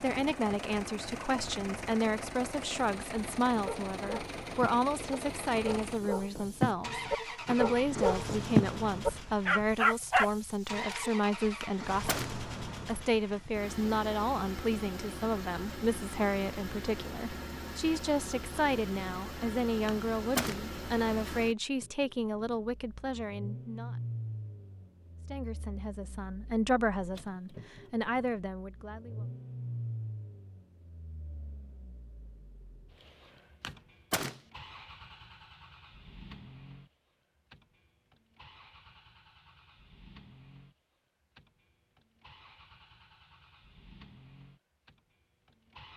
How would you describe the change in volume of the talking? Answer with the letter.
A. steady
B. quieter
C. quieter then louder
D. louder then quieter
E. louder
A.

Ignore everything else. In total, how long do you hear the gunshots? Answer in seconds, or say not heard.
2 s.